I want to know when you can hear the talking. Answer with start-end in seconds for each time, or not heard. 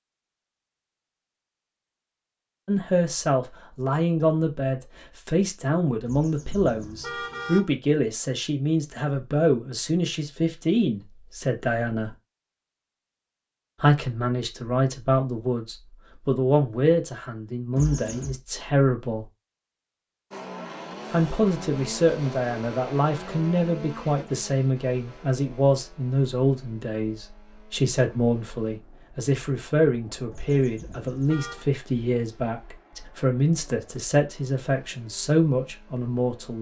2.6-12.2, 13.8-19.2, 21.1-36.5.